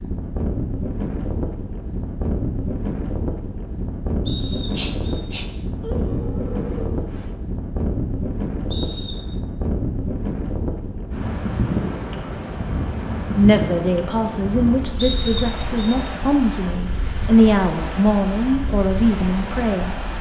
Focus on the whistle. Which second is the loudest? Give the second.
15 s.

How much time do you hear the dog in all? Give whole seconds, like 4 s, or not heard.
3 s.